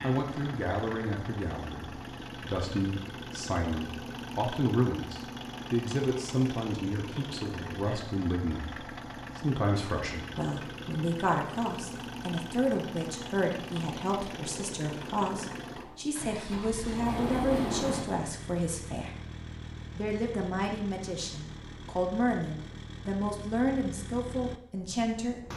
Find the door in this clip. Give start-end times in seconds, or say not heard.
15.8-18.1.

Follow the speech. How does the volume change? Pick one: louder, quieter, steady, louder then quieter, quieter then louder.
steady.